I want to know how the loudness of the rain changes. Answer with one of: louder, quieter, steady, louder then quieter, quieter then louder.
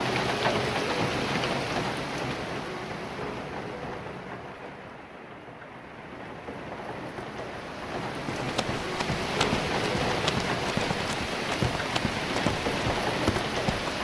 quieter then louder.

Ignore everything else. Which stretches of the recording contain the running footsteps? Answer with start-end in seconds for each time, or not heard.
8.3-13.9.